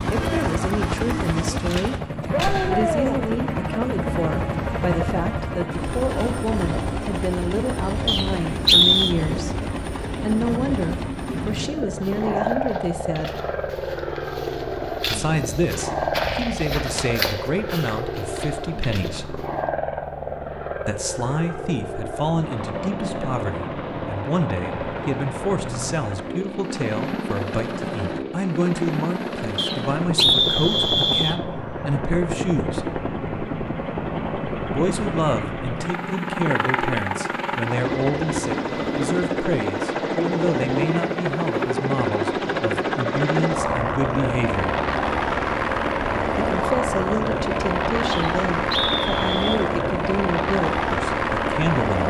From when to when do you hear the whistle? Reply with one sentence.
The whistle can be heard from 8.1 to 9.2 s, from 29.6 to 31.4 s and from 48.1 to 49.6 s.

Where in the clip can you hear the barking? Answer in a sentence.
You can't hear the barking here.